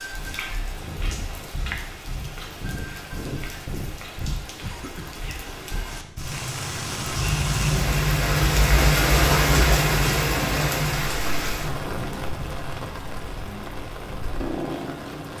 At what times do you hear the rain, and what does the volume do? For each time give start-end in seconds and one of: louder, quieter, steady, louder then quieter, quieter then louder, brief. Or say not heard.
0.0-15.3 louder then quieter.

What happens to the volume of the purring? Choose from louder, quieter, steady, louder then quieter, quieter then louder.
louder then quieter.